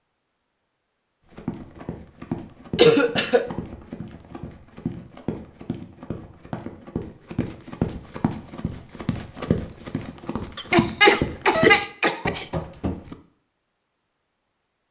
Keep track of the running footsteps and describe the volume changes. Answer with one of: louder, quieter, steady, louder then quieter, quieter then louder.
louder.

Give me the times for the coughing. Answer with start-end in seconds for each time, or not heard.
2.8-3.5, 10.6-12.4.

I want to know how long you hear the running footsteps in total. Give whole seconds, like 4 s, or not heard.
12 s.